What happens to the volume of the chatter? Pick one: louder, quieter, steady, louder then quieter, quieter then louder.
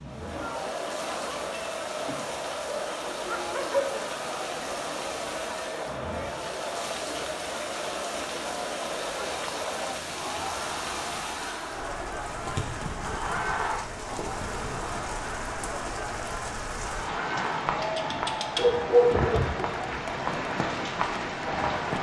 steady.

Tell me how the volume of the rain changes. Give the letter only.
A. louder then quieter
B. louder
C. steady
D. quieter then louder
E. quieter
B.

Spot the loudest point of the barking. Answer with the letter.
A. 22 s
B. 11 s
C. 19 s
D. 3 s
C.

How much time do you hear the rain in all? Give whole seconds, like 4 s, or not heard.
22 s.